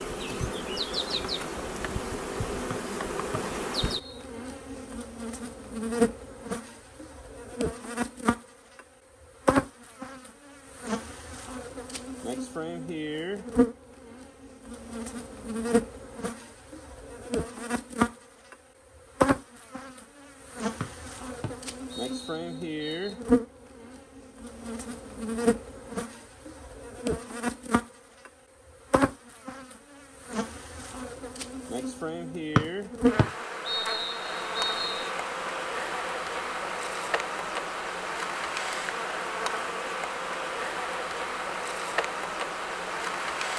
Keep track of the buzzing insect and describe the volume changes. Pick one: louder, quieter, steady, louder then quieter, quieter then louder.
steady.